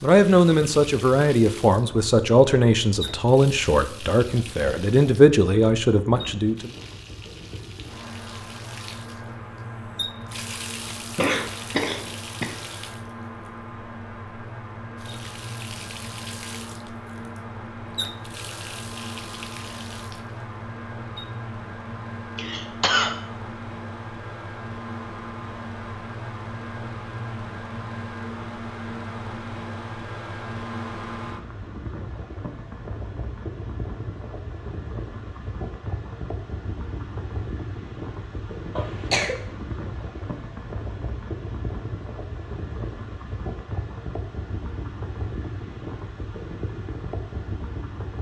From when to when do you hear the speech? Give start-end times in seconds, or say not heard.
0.0-6.7.